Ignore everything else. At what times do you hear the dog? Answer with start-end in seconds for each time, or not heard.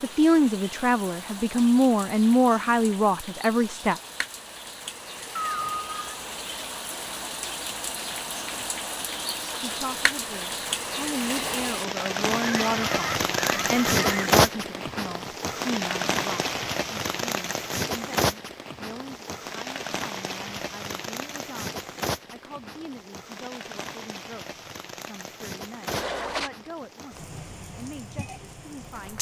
not heard.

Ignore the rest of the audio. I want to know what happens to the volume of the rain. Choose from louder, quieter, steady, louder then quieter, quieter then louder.
louder then quieter.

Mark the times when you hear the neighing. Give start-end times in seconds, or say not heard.
5.3-6.2, 12.3-14.3, 25.9-26.5.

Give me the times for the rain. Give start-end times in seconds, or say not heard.
0.0-29.1.